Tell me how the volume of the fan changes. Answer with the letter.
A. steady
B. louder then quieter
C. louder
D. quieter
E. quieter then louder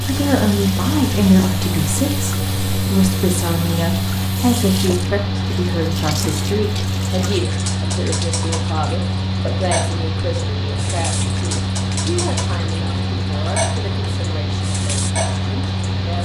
A.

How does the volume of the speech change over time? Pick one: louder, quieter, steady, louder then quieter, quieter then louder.
quieter.